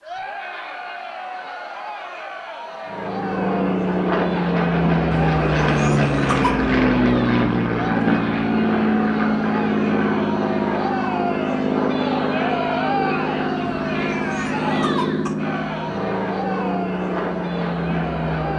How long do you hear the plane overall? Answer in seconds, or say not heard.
16 s.